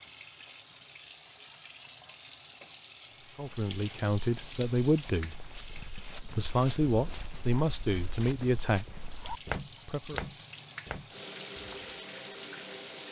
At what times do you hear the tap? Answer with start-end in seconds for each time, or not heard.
0.0-13.0.